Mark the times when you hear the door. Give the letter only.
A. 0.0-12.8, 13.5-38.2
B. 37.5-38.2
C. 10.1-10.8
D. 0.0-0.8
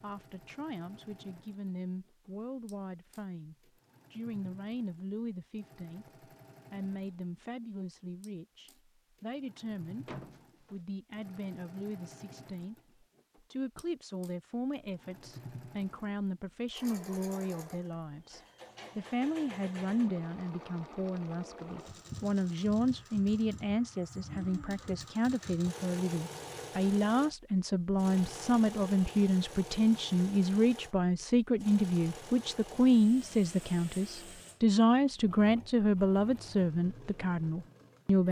C.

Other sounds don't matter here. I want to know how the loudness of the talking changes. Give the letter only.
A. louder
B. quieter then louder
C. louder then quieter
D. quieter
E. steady
A.